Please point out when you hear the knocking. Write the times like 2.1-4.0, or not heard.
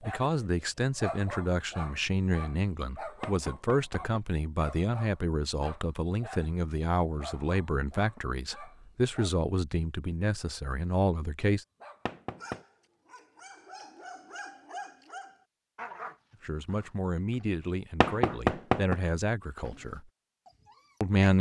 3.2-4.2, 12.1-12.6, 18.0-18.9.